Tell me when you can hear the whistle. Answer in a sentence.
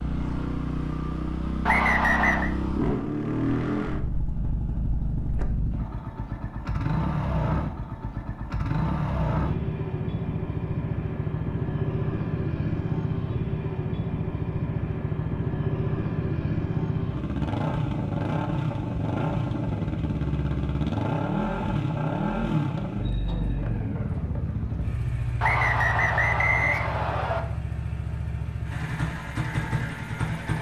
The whistle can be heard from 1.6 to 2.5 s and from 25.4 to 27.4 s.